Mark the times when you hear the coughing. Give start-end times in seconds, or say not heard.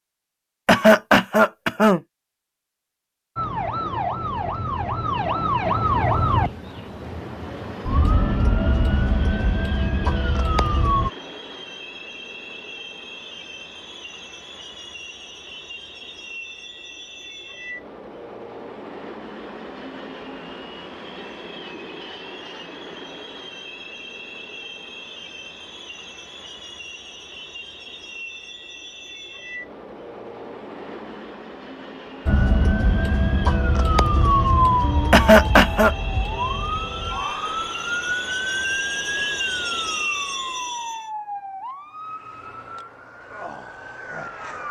0.7-2.0, 35.1-35.9.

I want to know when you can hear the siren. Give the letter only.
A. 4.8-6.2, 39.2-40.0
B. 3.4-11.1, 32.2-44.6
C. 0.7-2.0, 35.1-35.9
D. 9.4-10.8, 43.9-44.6
B.